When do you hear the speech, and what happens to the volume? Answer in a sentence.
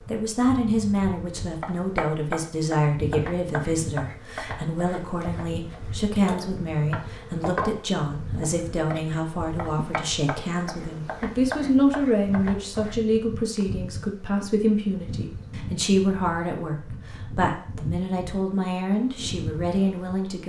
You can hear the speech from 0.1 to 20.4 s, at a steady volume.